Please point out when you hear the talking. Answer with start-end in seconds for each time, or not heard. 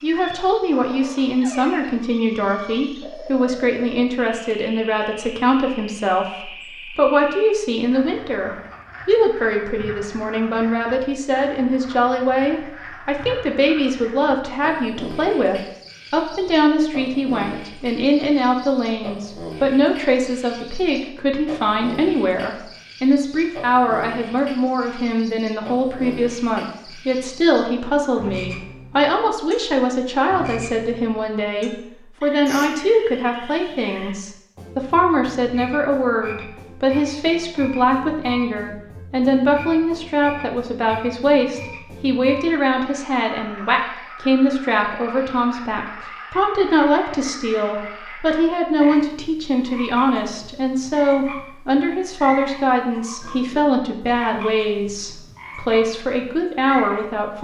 0.0-57.3.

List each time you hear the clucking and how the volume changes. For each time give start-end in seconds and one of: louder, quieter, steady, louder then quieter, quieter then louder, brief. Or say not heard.
not heard.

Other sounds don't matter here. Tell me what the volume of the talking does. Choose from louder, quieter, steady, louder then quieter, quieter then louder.
steady.